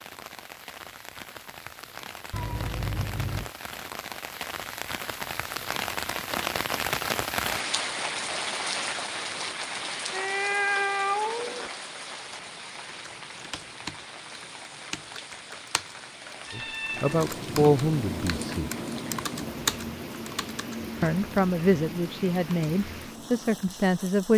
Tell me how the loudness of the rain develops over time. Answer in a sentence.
The volume of the rain goes up, then down.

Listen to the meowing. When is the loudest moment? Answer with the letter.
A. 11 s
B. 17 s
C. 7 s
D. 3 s
A.